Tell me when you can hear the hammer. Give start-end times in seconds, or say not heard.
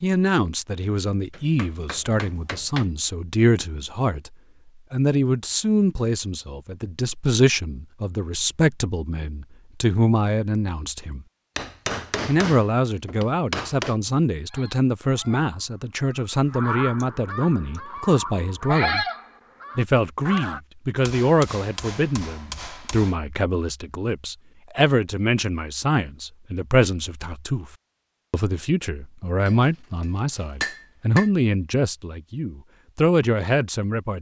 1.3-2.9, 11.6-13.9, 21.0-23.1, 29.4-31.3.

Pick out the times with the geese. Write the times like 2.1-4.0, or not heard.
14.4-20.6.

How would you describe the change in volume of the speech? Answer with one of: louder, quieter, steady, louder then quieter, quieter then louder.
steady.